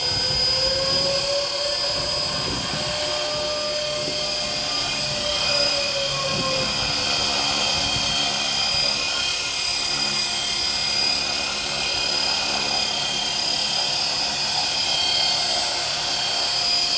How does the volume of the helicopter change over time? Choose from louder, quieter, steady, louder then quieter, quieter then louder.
steady.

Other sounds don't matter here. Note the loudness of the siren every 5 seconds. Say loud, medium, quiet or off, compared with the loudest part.
loud, loud, off, off.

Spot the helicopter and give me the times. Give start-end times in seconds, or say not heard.
0.0-16.9.